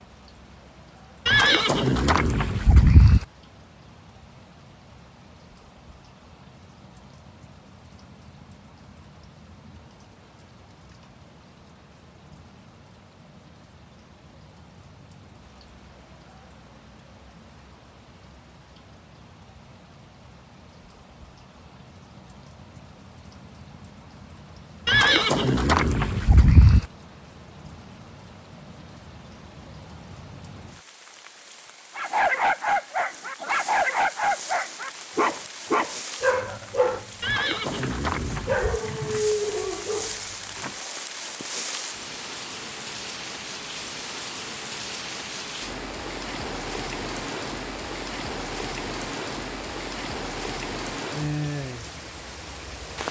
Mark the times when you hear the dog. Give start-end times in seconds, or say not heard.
31.9-40.8.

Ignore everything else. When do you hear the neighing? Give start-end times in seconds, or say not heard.
1.2-3.2, 24.9-26.9, 37.2-38.8.